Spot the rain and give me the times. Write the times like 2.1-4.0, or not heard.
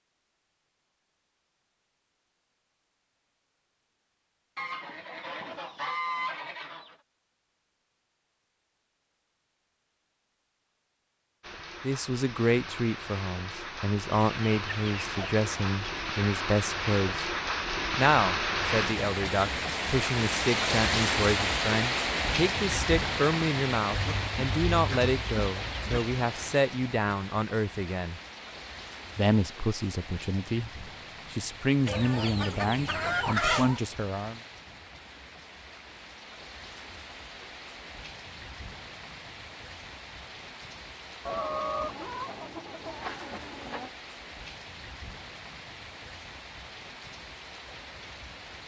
11.4-48.6.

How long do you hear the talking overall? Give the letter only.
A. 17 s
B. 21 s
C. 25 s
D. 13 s
B.